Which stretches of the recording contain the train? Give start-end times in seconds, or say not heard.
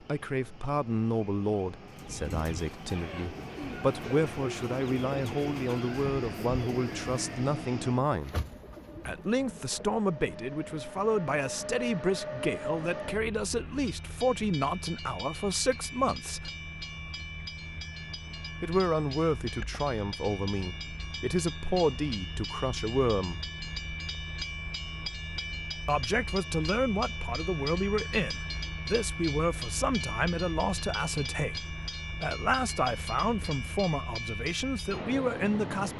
0.0-35.9.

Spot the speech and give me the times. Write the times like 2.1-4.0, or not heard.
0.1-8.3, 9.1-16.5, 18.6-23.4, 25.9-35.9.